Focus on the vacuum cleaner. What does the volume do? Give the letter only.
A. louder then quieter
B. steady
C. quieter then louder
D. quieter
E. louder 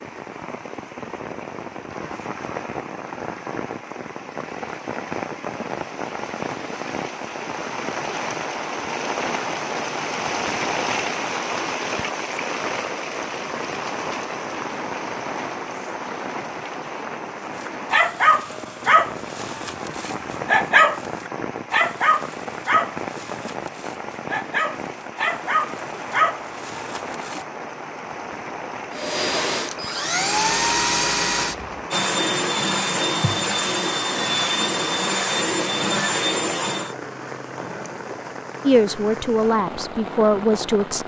B.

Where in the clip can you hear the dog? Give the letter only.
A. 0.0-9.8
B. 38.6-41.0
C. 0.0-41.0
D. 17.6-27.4
D.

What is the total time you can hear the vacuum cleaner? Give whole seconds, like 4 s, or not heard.
8 s.